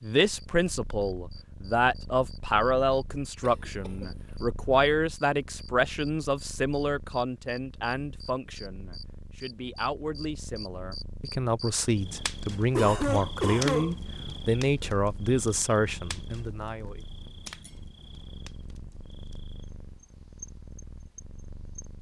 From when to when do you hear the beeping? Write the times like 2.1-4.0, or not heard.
not heard.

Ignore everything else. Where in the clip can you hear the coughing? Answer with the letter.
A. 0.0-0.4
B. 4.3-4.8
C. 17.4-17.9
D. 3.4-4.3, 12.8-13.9
D.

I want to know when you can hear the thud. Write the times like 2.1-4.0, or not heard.
17.4-17.9.